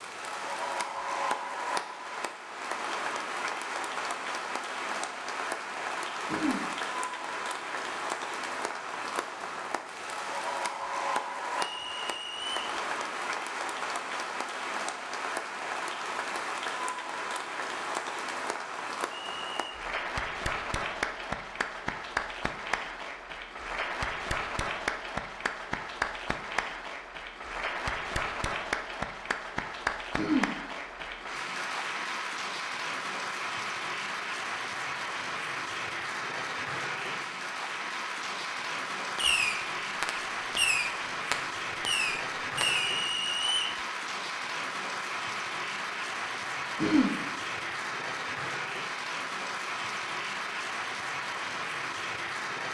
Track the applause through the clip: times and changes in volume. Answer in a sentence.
You can hear the applause from 0.0 to 52.6 s, at a steady volume.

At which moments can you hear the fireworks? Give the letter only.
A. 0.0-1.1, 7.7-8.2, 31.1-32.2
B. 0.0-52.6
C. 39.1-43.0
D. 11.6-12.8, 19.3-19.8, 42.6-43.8
C.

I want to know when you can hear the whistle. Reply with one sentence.
You can hear the whistle from 11.6 to 12.8 s, from 19.3 to 19.8 s and from 42.6 to 43.8 s.